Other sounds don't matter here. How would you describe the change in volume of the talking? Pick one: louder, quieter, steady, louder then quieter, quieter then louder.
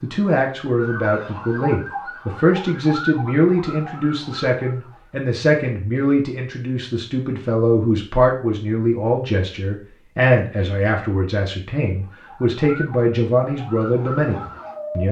steady.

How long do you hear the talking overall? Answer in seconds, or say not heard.
15 s.